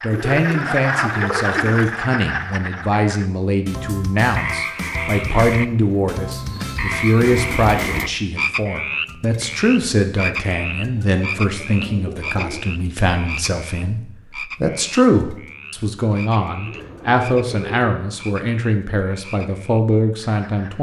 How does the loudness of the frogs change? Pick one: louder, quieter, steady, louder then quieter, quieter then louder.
quieter.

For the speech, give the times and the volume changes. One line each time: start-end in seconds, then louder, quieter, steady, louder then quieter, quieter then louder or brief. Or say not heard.
0.0-20.7 steady.